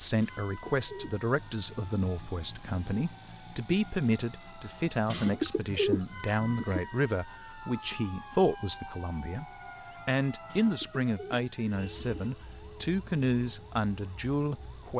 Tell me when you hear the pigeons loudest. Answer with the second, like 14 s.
6 s.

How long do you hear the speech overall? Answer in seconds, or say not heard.
14 s.